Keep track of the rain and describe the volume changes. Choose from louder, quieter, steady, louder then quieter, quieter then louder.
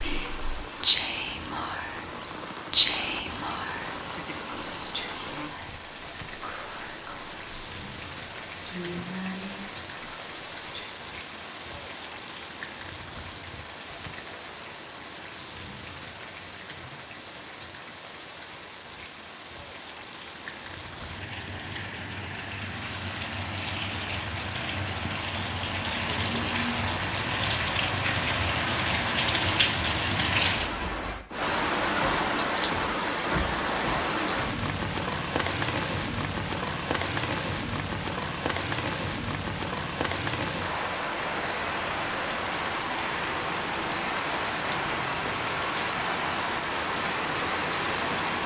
louder.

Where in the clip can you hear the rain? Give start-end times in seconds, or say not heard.
0.0-48.4.